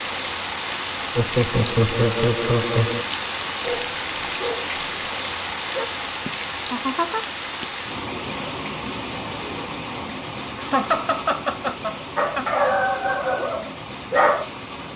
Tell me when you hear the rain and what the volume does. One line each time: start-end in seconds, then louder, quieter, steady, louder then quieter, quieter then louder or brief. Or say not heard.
0.0-14.9 quieter.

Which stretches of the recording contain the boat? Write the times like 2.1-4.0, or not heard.
not heard.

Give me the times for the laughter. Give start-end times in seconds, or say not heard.
1.1-3.0, 6.2-7.7, 10.6-12.4.